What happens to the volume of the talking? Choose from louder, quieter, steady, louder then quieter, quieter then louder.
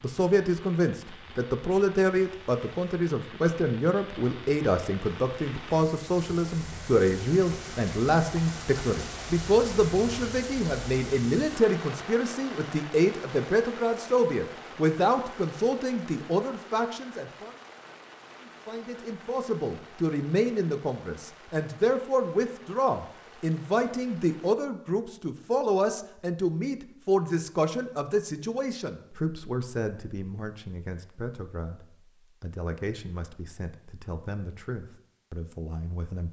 quieter.